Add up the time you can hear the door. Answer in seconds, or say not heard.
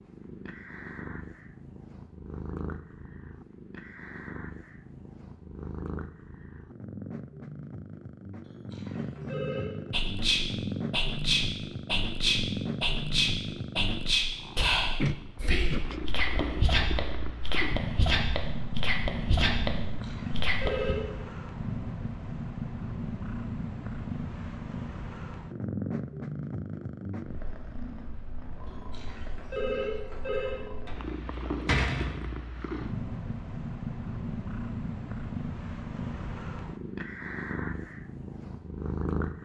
2 s.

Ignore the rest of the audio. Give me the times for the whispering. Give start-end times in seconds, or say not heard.
9.9-20.9.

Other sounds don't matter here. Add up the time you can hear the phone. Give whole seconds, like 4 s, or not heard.
4 s.